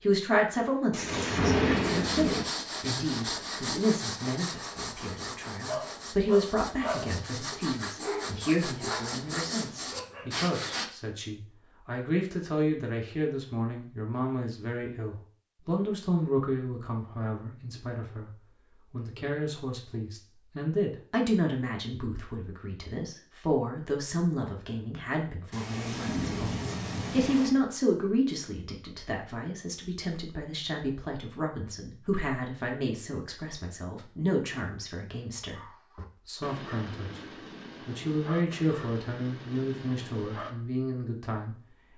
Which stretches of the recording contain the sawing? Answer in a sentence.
You can hear the sawing from 1.8 to 10.9 s.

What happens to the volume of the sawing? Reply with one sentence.
The volume of the sawing goes down, then up.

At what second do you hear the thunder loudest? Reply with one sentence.
The volume of the thunder peaks at 2 seconds.